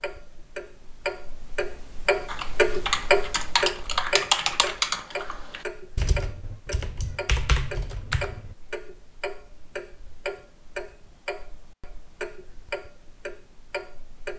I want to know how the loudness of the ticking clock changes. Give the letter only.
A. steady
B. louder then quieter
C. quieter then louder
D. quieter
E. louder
D.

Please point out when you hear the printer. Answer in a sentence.
The printer can't be heard in this clip.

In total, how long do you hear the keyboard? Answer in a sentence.
You can hear the keyboard for 6 seconds altogether.